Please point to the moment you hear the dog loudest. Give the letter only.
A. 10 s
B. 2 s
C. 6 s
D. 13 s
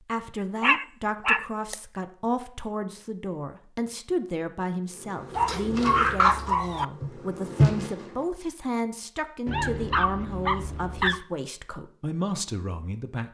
C.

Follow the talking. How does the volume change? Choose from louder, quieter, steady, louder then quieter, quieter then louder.
steady.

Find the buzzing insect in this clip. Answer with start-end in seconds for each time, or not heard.
4.9-8.2.